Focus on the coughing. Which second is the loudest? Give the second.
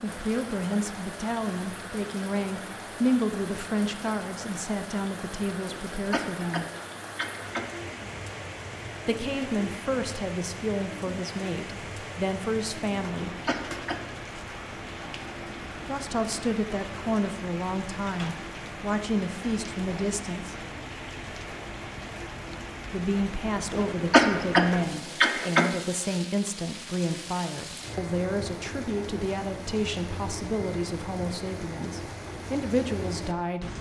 24 s.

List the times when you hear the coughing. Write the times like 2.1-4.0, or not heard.
5.9-7.7, 13.2-14.2, 23.7-25.7.